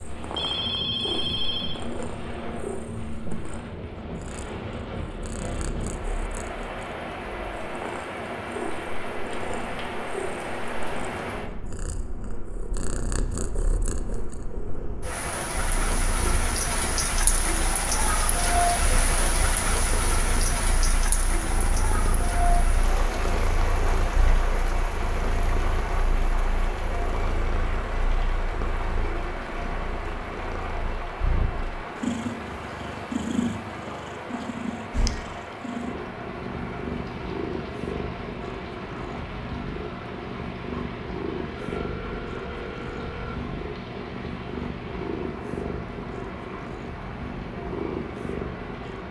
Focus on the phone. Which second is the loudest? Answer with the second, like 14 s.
1 s.